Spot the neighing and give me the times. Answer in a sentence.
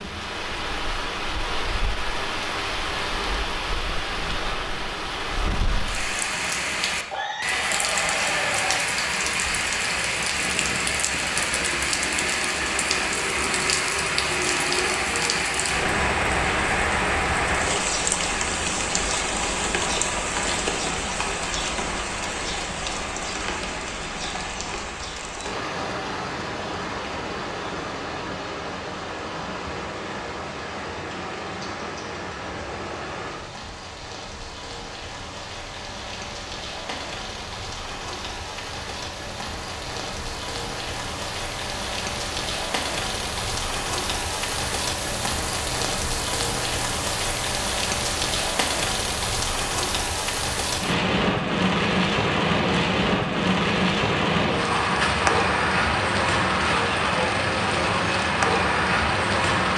The neighing can be heard from 7.1 to 8.8 s.